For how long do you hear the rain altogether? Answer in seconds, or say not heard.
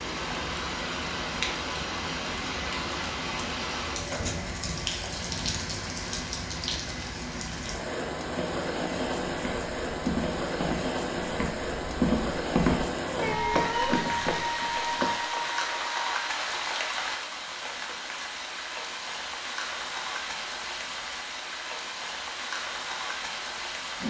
24 s.